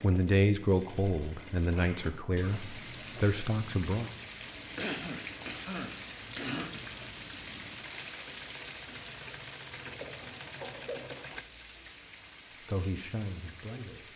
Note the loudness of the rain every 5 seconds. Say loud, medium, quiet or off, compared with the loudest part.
loud, loud, medium.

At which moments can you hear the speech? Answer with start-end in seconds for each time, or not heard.
0.0-4.1, 12.7-14.1.